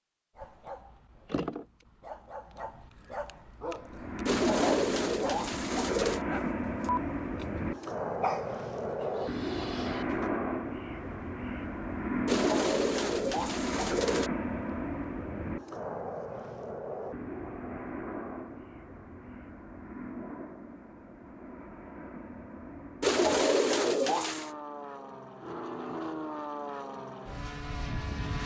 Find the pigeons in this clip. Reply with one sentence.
You can hear the pigeons from 4.2 to 6.2 s, from 12.2 to 14.3 s and from 23.0 to 24.5 s.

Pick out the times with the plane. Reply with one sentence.
You can hear the plane from 3.8 to 28.4 s.